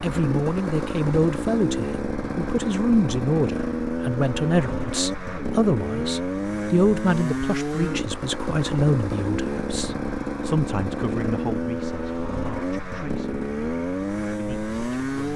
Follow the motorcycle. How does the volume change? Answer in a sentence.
The volume of the motorcycle stays about the same.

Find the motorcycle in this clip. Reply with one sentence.
You can hear the motorcycle from 0.0 to 15.3 s.